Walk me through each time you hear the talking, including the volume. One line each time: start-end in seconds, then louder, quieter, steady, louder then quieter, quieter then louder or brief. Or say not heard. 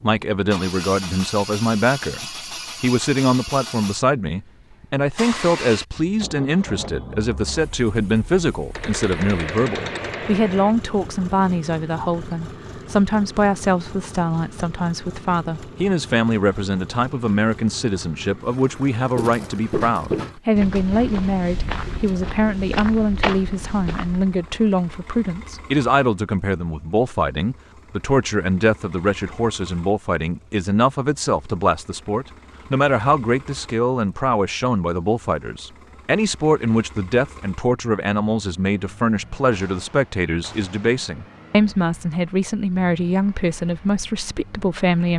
0.0-45.1 steady.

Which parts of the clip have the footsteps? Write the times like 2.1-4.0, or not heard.
19.1-24.4.